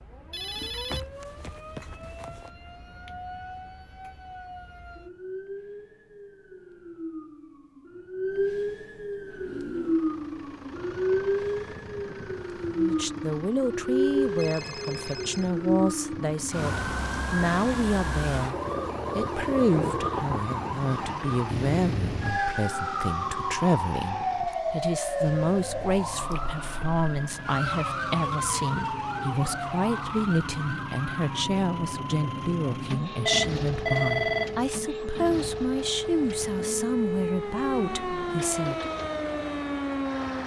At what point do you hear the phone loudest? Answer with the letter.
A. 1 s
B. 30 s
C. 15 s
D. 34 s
D.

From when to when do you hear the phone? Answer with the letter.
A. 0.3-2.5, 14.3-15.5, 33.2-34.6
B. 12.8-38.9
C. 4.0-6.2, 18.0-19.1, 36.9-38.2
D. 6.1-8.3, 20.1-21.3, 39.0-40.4
A.